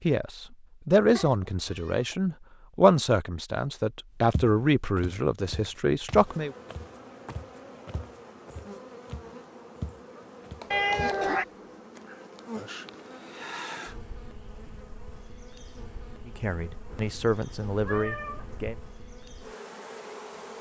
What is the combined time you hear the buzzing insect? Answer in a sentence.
You can hear the buzzing insect for 14 seconds altogether.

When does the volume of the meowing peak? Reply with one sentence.
The volume of the meowing peaks at 11 seconds.